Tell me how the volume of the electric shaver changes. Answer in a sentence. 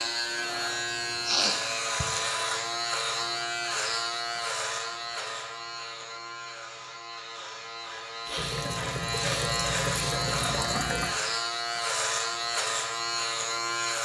The volume of the electric shaver goes down, then up.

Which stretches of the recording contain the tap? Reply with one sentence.
You can hear the tap from 8.3 to 11.2 s.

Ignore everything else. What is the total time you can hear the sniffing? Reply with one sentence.
The sniffing can be heard for 3 seconds in total.